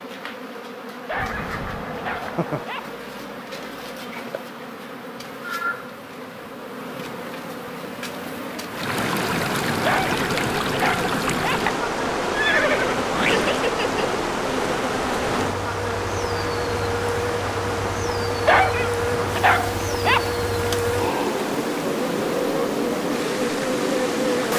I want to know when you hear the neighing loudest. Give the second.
13 s.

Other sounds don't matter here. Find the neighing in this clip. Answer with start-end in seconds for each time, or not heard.
1.1-2.6, 12.3-14.1.